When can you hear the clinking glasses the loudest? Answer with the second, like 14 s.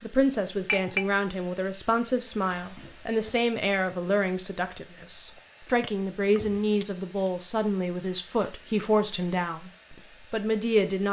1 s.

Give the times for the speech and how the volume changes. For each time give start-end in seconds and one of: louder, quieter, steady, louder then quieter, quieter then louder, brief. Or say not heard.
0.0-11.0 steady.